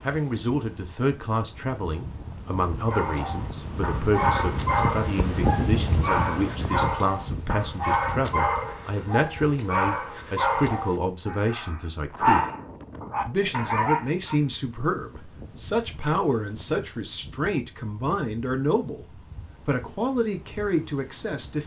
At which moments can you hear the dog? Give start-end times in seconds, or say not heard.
2.9-14.4.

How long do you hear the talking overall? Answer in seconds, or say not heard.
20 s.